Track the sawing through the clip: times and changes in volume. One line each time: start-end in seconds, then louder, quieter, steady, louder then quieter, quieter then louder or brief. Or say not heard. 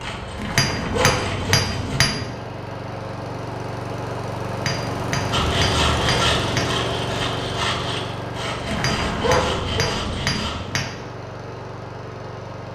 0.0-2.0 brief
5.3-10.6 quieter.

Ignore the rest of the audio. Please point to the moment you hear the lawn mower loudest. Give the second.
6 s.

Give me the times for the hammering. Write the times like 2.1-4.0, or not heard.
0.6-2.4, 4.7-6.8, 8.8-11.0.